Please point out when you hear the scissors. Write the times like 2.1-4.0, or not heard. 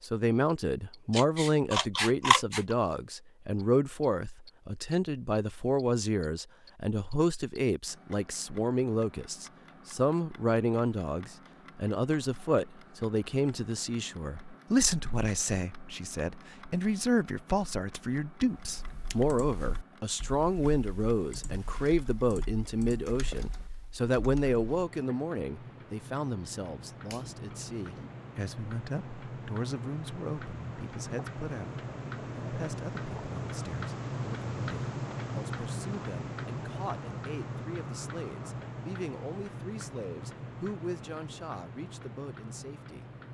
1.1-2.8, 27.1-28.1.